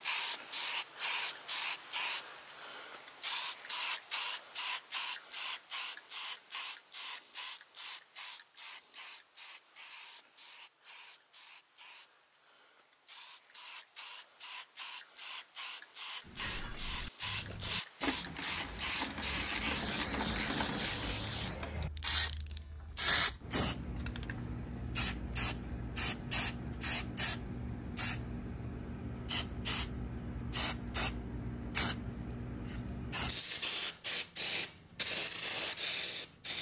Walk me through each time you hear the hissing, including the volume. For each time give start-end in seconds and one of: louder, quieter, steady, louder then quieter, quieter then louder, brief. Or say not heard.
0.0-36.5 quieter then louder.